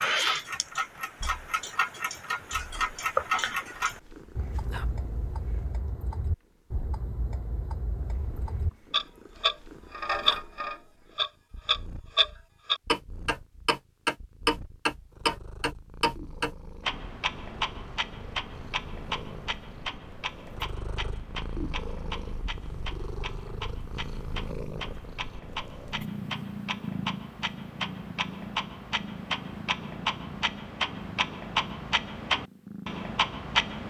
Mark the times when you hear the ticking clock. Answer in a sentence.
The ticking clock can be heard from 0.0 to 33.8 s.